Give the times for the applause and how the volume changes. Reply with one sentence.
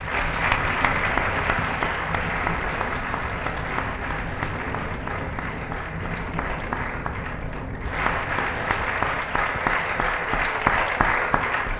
You can hear the applause from 0.0 to 11.7 s, getting quieter then louder.